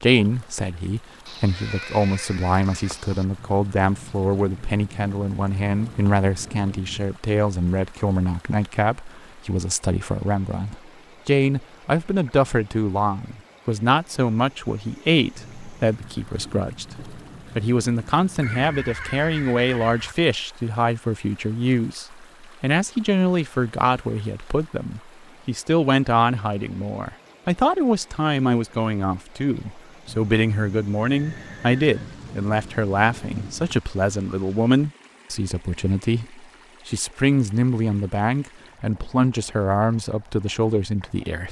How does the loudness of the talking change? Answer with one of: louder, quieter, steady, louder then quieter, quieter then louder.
steady.